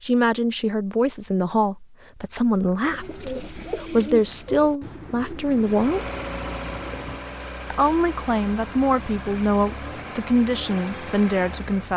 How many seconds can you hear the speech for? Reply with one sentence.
You can hear the speech for 10 seconds altogether.